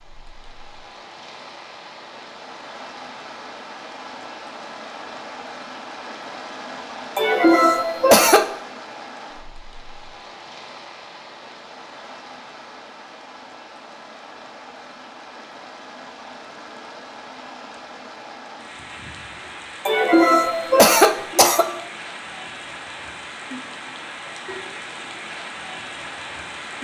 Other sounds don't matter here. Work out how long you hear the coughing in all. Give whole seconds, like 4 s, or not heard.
3 s.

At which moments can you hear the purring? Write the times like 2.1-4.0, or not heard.
not heard.